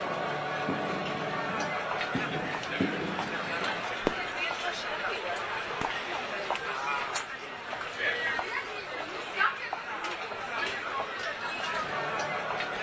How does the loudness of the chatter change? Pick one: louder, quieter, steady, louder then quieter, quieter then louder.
steady.